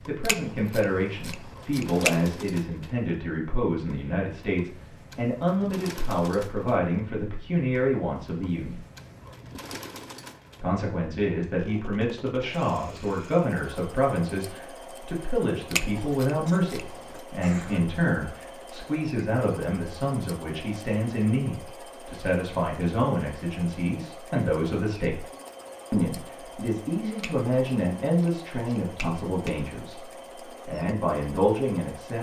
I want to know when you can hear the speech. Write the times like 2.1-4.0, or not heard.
0.1-8.8, 10.6-25.2, 25.9-32.1.